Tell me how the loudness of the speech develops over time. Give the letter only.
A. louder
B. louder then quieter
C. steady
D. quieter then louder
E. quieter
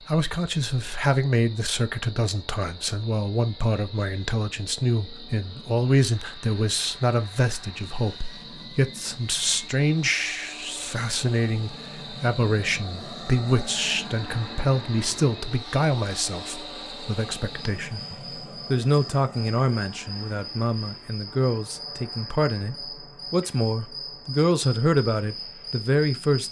C.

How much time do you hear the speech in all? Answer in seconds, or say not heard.
26 s.